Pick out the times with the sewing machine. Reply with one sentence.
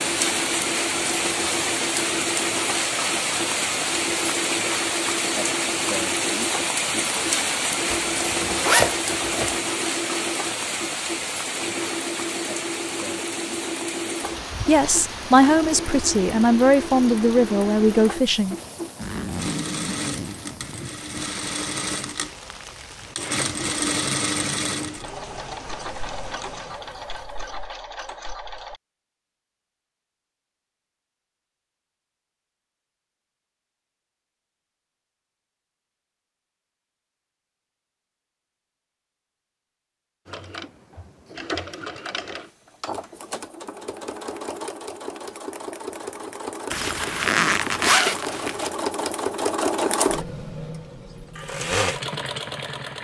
You can hear the sewing machine from 0.0 to 28.8 s and from 40.2 to 52.9 s.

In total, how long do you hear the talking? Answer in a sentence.
You can hear the talking for 4 seconds altogether.